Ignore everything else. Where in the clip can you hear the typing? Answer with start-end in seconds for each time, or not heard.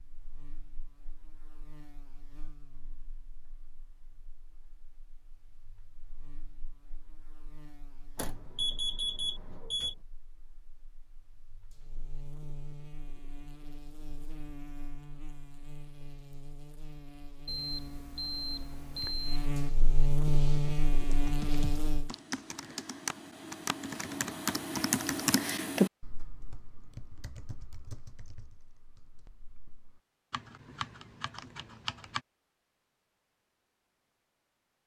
20.2-32.2.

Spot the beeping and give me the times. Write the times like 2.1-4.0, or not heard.
8.2-9.9, 17.4-19.5.